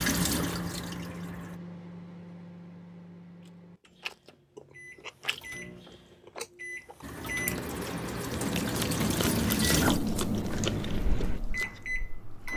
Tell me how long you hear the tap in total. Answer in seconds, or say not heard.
7 s.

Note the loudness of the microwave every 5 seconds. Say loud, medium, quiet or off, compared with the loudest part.
medium, loud, loud.